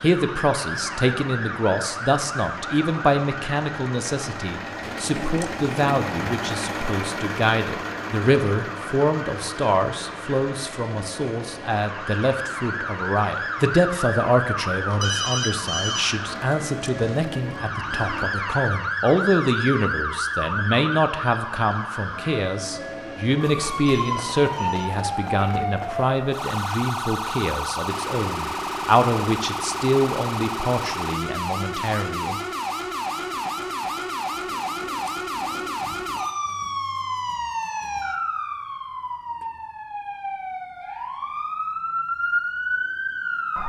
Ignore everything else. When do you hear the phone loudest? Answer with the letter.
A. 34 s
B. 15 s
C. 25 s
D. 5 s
B.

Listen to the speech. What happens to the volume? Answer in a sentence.
The volume of the speech stays about the same.